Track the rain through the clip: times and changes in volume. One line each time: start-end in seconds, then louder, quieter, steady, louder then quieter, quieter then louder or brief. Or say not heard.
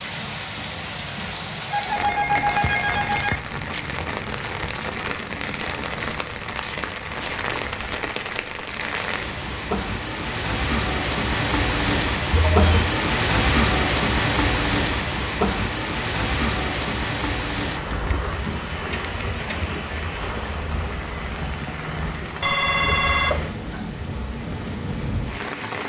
0.0-25.8 louder then quieter.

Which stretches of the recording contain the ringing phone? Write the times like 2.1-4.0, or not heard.
1.7-3.4, 12.3-12.9, 22.4-23.5.